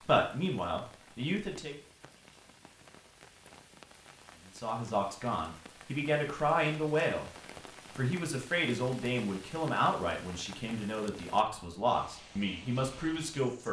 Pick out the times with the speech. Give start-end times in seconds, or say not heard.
0.0-1.8, 4.5-7.3, 8.0-13.6.